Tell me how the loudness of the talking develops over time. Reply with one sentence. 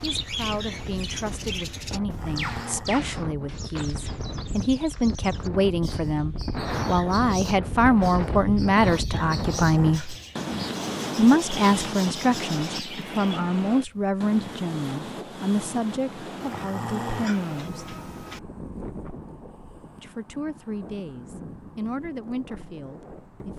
The volume of the talking goes up, then down.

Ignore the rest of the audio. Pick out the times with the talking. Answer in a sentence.
You can hear the talking from 0.0 to 10.2 s, from 11.2 to 17.9 s and from 19.9 to 23.5 s.